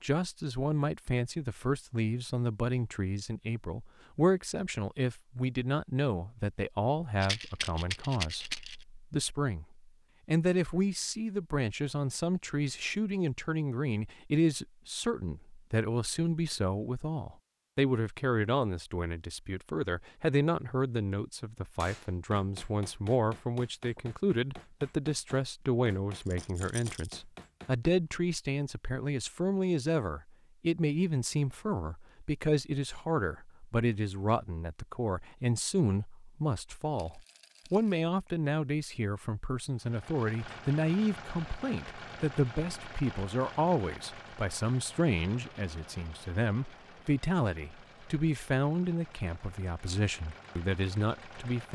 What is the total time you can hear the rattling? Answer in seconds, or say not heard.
4 s.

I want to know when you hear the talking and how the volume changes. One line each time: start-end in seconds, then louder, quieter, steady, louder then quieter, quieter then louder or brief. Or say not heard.
0.0-51.7 steady.